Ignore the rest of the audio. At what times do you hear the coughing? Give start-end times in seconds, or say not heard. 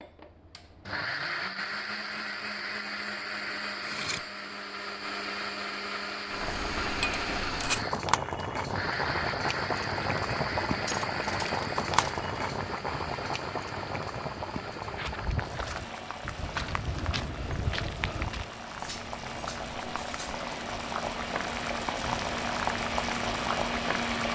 not heard.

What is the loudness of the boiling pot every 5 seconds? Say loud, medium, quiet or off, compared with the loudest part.
off, loud, loud, medium, loud.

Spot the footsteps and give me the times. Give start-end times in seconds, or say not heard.
14.8-18.5.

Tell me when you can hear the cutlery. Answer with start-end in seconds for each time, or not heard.
3.8-4.2, 10.8-12.2, 18.8-20.4.